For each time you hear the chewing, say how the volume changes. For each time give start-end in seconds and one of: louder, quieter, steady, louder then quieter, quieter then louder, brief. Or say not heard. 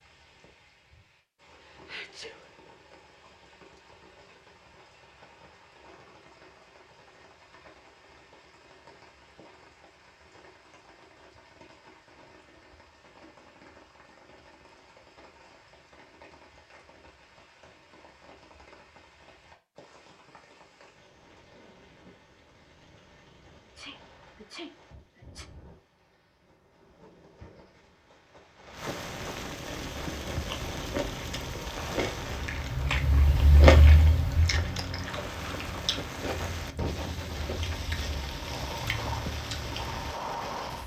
29.6-40.1 louder then quieter.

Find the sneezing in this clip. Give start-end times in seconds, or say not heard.
1.6-2.5, 23.6-25.5.